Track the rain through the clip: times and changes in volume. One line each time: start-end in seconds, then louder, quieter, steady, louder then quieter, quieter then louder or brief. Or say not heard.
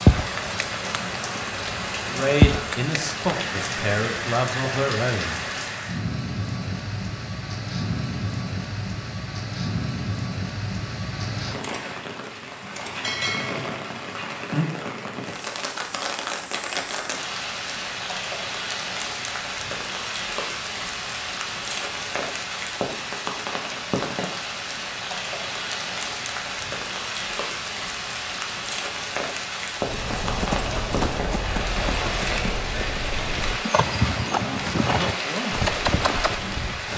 0.0-36.9 steady.